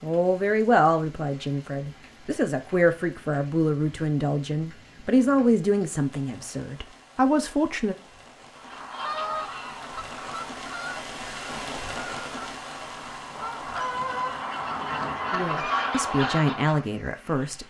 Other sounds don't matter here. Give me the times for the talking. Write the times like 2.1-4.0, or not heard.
0.0-8.0, 15.3-17.6.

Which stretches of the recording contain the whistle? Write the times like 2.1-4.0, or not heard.
not heard.